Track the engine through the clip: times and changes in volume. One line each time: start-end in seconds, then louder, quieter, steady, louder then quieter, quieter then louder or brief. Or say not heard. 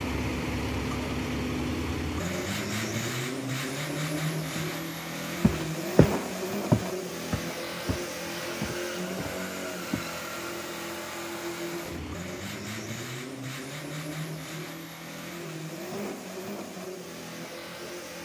0.0-18.1 quieter.